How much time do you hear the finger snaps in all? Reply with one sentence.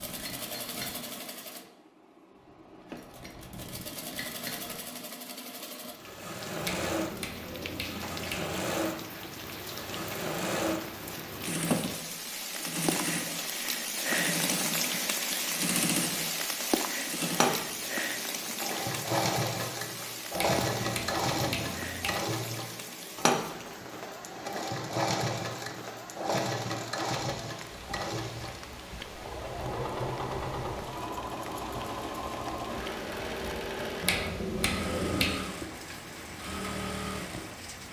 The finger snaps can be heard for 5 seconds in total.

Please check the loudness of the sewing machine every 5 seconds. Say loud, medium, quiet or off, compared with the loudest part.
medium, loud, loud, loud, loud, loud, loud, medium.